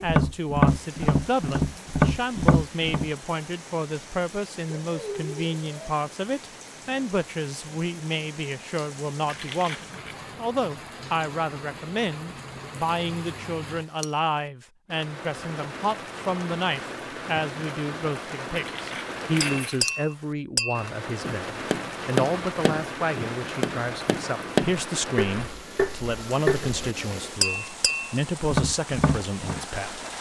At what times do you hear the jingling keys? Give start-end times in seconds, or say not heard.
9.2-10.2, 18.6-20.0.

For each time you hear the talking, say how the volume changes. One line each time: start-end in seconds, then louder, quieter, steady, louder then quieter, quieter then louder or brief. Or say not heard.
0.0-30.0 steady.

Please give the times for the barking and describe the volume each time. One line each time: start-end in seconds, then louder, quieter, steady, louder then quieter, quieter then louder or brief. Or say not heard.
not heard.